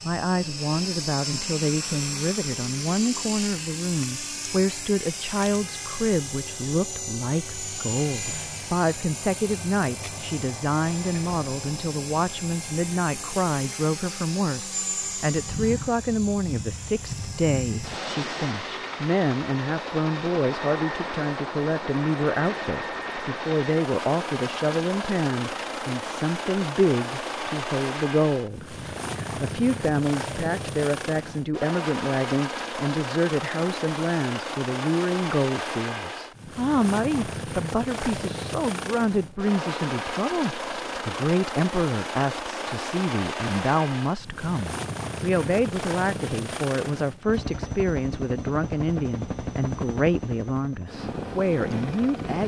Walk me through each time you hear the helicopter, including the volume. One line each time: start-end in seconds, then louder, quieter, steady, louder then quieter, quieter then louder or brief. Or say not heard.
0.0-52.4 steady.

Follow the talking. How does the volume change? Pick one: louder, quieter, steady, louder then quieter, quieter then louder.
steady.